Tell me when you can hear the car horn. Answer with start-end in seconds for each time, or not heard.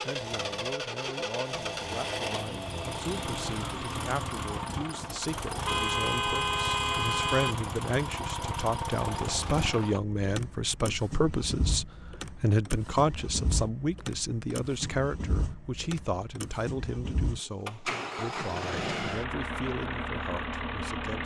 5.7-7.5.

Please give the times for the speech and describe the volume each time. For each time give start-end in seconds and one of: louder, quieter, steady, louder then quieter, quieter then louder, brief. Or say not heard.
0.0-21.2 louder then quieter.